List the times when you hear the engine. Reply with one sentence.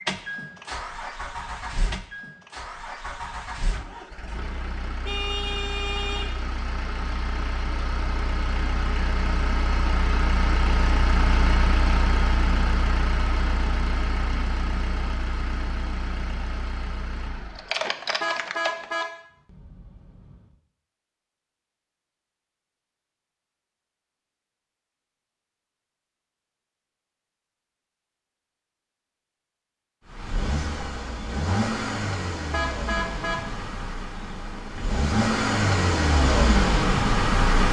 You can hear the engine from 0.0 to 19.1 s and from 30.1 to 37.6 s.